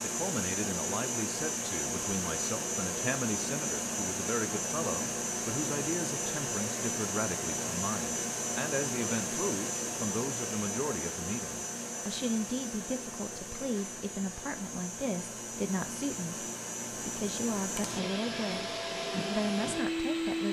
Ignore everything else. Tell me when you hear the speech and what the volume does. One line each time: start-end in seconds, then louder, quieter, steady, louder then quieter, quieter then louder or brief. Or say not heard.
0.0-20.4 steady.